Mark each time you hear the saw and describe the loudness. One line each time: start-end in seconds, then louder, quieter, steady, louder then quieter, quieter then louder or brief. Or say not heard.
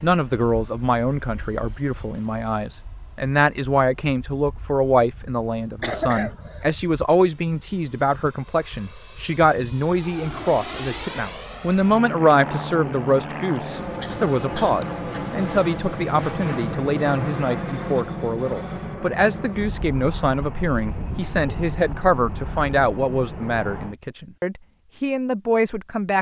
not heard.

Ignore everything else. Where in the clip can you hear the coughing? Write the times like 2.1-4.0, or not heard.
5.8-6.8, 13.6-15.2.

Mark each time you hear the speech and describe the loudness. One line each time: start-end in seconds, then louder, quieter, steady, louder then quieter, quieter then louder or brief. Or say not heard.
0.0-26.1 steady.